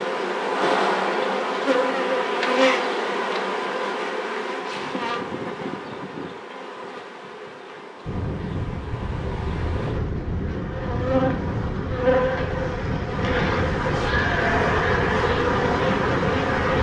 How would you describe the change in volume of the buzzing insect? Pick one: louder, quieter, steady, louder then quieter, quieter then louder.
quieter then louder.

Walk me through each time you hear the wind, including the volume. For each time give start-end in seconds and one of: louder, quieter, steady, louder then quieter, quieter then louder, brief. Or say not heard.
8.1-16.7 steady.